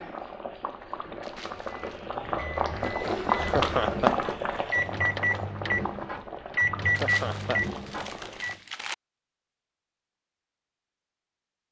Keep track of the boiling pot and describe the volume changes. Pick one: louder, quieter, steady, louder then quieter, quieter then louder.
louder then quieter.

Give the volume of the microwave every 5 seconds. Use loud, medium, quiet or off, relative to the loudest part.
medium, loud, off.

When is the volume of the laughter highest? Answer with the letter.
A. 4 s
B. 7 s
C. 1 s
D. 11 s
A.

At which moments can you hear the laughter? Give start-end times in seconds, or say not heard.
3.4-4.1, 6.8-7.6.